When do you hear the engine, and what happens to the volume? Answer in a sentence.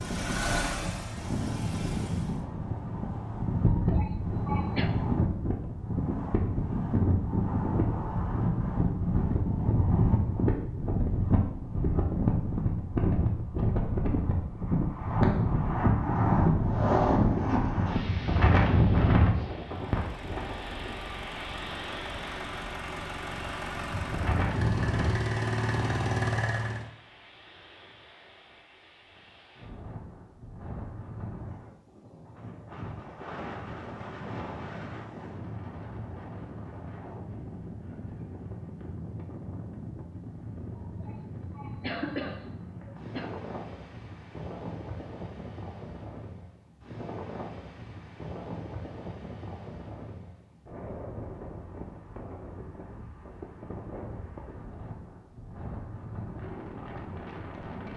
You can hear the engine briefly from 0.0 to 2.5 s; and from 19.8 to 26.9 s, getting louder.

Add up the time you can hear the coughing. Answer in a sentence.
The coughing can be heard for 4 seconds in total.